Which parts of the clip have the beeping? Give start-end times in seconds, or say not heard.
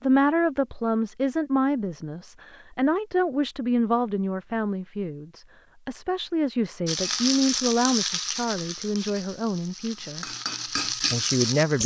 not heard.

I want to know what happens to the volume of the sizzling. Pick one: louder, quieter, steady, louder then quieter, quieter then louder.
quieter then louder.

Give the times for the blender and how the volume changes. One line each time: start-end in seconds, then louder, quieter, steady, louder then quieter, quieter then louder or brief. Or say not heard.
not heard.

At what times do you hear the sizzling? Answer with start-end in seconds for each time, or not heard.
6.8-11.8.